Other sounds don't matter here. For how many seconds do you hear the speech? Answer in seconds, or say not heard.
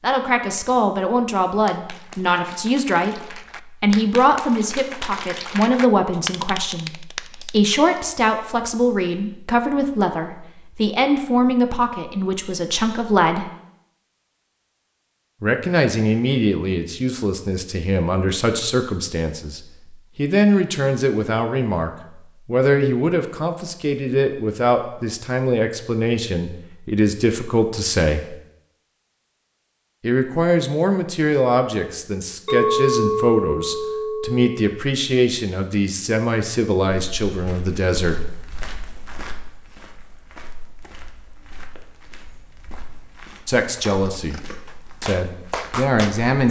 37 s.